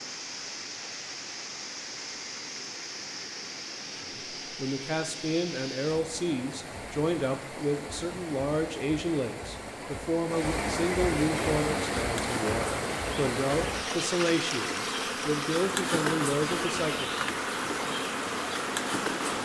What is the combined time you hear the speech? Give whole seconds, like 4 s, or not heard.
13 s.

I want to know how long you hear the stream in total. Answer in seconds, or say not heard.
19 s.